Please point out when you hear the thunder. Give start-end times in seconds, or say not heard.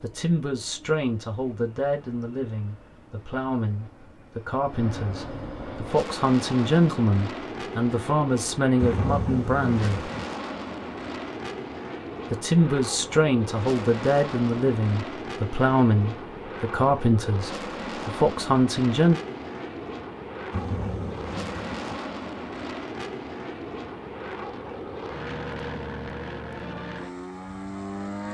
8.8-10.3, 20.5-21.8.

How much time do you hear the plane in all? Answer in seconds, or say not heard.
28 s.